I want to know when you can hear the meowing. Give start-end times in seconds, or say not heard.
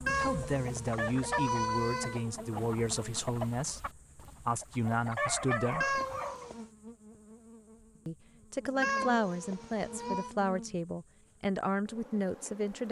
0.1-2.3, 5.8-6.7, 8.8-10.3.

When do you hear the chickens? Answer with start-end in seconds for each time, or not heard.
0.0-6.2.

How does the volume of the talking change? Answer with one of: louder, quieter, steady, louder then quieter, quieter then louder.
steady.